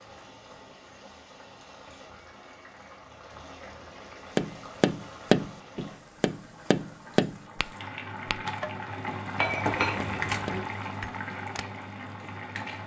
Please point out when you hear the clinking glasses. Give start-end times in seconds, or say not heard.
9.3-10.6.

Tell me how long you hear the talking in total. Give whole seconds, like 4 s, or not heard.
not heard.